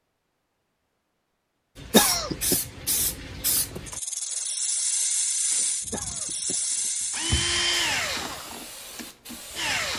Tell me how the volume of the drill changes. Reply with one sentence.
The loudness of the drill goes up, then down.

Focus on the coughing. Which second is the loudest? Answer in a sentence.
The volume of the coughing peaks at 2 seconds.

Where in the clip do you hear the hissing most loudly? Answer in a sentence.
The volume of the hissing peaks at 5 seconds.